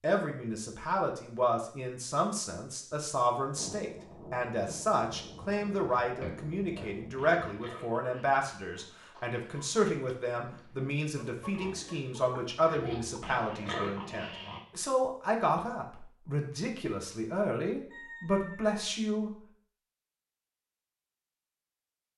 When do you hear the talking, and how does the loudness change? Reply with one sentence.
You can hear the talking from 0.0 to 19.3 s, at a steady volume.